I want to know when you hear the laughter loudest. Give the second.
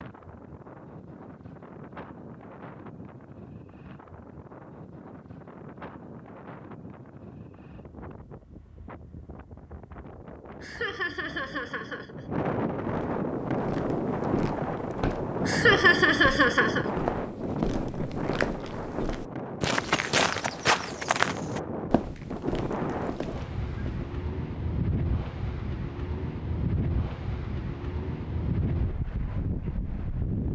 16 s.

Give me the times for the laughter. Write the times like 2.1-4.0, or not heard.
10.6-12.3, 15.4-16.9.